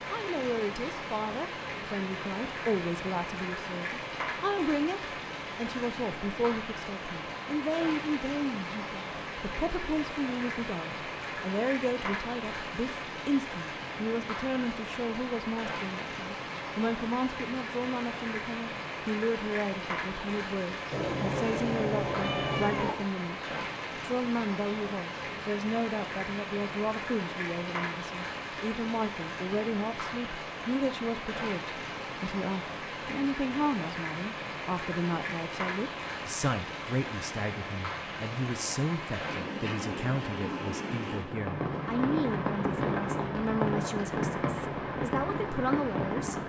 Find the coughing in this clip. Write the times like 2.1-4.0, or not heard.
not heard.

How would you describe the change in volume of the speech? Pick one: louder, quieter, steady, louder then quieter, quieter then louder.
steady.